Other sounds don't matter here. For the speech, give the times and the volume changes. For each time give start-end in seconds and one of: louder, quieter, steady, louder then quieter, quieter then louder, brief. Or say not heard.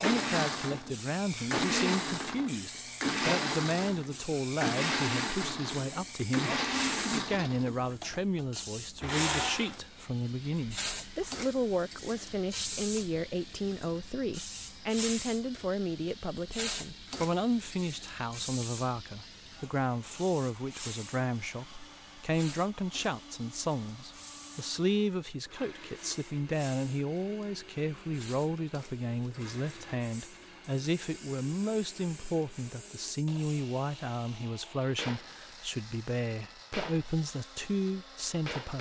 0.0-38.7 steady.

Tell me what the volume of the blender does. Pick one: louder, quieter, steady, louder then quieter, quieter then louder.
quieter.